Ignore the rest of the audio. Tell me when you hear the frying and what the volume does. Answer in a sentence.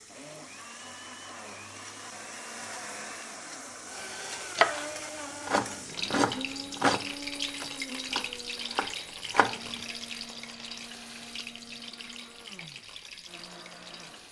You can hear the frying from 0.0 to 14.2 s, getting louder then quieter.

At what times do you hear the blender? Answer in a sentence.
You can hear the blender from 0.0 to 14.2 s.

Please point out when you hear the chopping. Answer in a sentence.
You can hear the chopping from 4.5 to 9.6 s.